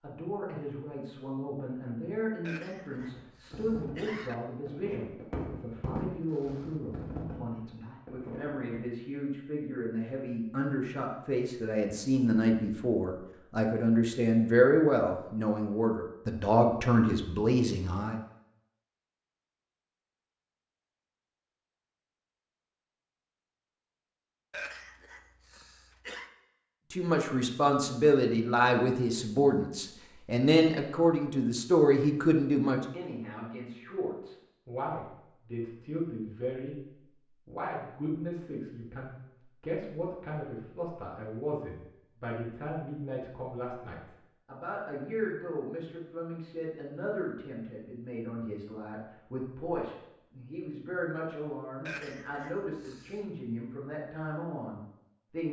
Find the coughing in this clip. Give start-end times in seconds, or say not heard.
2.4-4.3, 24.5-26.3, 51.9-53.2.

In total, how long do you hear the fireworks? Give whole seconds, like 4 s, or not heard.
6 s.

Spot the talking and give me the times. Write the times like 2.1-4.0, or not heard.
0.0-18.1, 26.9-36.8, 37.5-55.4.